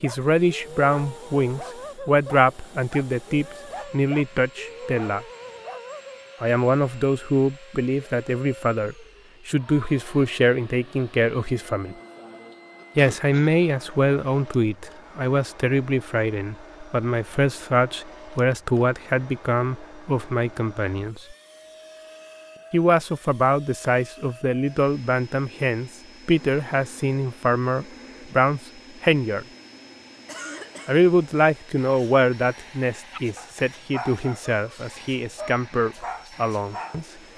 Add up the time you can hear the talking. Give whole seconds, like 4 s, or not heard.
32 s.